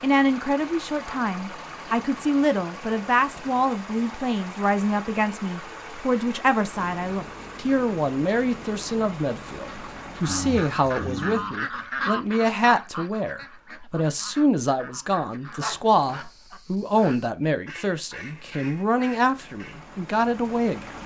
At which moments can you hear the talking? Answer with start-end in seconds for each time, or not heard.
0.0-21.0.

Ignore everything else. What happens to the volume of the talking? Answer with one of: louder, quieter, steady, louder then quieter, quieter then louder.
steady.